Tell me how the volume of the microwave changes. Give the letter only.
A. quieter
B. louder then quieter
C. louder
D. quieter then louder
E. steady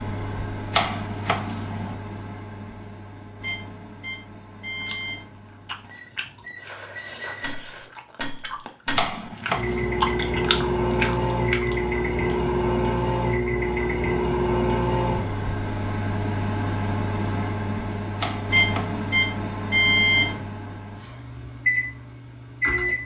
C.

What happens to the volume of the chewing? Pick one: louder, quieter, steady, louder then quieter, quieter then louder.
louder.